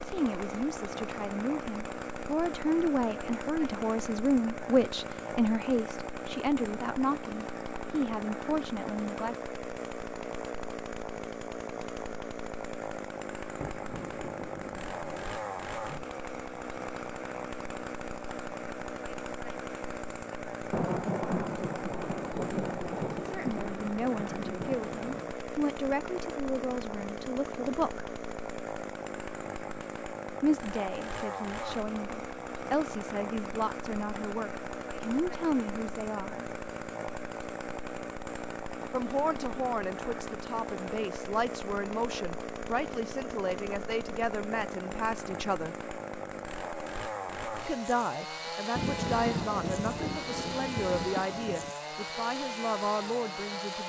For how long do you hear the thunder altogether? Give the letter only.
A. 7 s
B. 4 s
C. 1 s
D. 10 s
D.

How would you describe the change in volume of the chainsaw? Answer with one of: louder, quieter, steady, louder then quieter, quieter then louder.
steady.